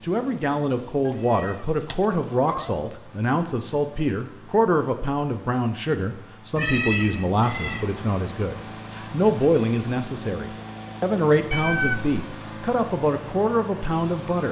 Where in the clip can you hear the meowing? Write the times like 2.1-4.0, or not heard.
1.1-2.8, 6.5-7.9, 11.5-12.2.